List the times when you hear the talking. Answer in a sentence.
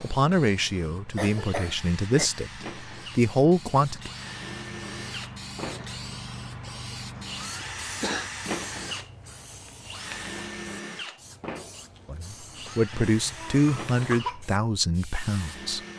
You can hear the talking from 0.0 to 4.1 s and from 12.1 to 15.8 s.